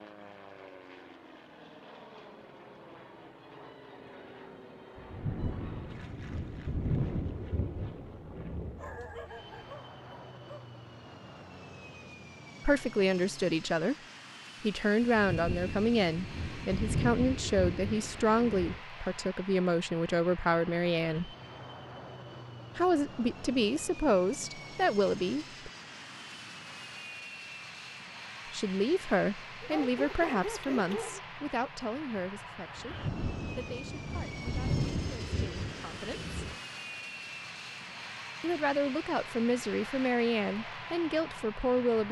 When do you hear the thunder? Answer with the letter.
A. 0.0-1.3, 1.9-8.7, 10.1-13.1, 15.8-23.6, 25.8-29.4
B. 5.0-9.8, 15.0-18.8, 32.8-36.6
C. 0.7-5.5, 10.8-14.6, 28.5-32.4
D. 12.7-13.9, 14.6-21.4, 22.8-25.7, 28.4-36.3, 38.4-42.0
B.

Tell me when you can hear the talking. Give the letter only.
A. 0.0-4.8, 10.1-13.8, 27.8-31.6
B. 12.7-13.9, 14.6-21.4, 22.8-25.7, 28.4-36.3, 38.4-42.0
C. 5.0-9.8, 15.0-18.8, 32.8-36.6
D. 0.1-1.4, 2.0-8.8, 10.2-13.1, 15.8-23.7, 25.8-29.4
B.